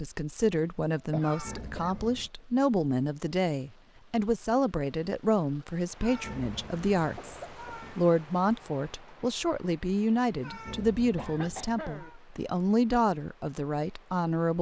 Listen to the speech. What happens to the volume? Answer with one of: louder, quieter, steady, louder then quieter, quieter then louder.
steady.